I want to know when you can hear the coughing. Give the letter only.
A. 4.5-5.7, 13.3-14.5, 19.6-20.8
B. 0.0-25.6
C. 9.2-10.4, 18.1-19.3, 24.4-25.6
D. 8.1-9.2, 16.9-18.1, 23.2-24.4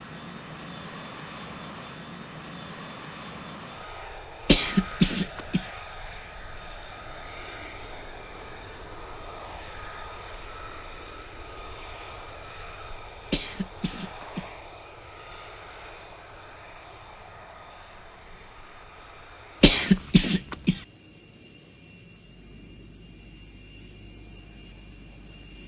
A.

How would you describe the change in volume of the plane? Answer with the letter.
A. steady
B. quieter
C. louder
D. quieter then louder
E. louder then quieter
B.